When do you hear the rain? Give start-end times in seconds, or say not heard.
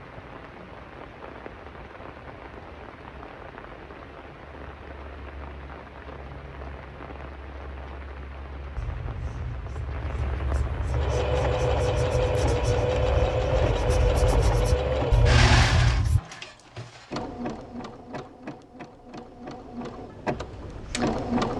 0.0-15.1.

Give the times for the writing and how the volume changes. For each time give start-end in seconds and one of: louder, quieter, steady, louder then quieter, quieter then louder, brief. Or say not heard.
8.8-16.2 louder.